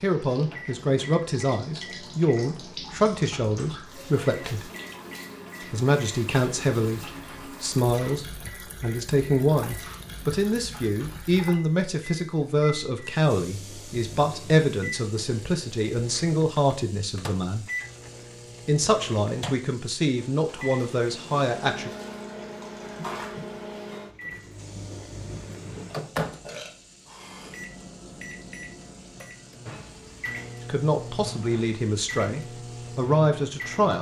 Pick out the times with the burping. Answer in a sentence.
You can hear the burping from 25.9 to 27.7 s.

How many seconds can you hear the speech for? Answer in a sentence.
The speech can be heard for 23 seconds in total.